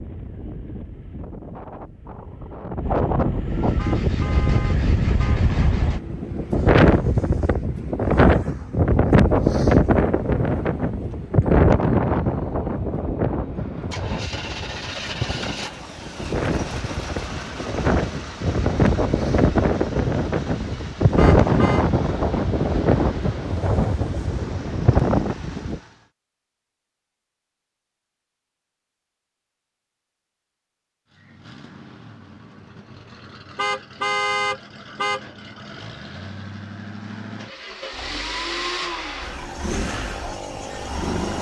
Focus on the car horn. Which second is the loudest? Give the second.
34 s.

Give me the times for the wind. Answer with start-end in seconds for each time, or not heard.
0.0-25.8.